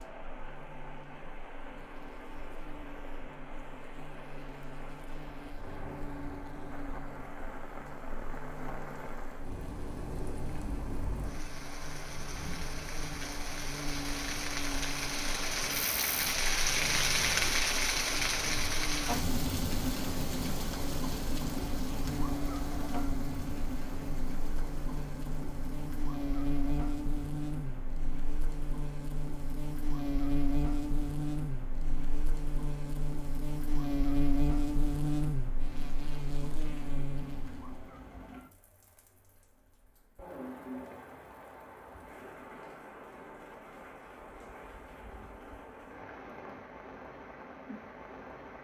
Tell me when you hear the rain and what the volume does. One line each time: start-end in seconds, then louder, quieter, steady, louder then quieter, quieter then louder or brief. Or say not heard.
0.0-48.6 louder then quieter.